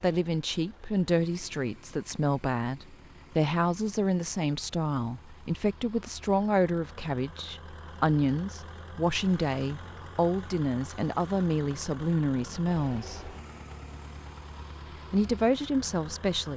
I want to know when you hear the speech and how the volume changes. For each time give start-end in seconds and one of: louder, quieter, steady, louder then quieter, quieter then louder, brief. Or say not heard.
0.0-13.3 steady
15.1-16.5 brief.